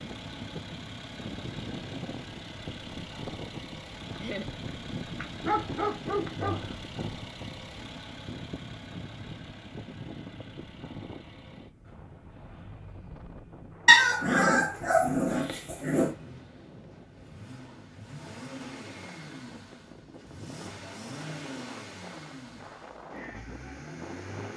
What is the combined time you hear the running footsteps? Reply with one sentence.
The running footsteps can't be heard in this clip.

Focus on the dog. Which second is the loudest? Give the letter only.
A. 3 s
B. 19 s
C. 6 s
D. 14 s
D.